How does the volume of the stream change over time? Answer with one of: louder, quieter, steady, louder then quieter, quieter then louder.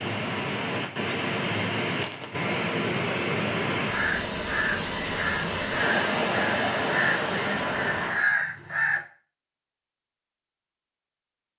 steady.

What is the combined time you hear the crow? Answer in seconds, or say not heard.
5 s.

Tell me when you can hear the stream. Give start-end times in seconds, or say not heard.
0.0-8.3.